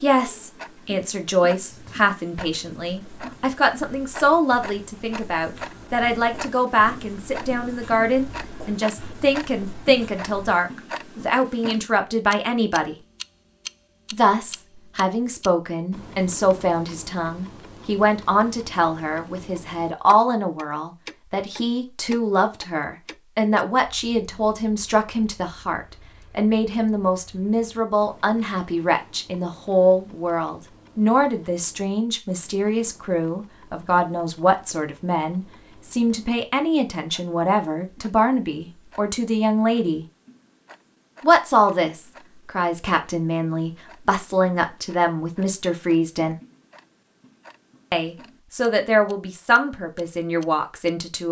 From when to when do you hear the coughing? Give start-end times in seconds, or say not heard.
not heard.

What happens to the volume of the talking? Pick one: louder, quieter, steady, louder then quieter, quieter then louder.
steady.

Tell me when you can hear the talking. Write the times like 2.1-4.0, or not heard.
0.0-12.9, 14.1-40.0, 41.2-46.4, 47.9-51.2.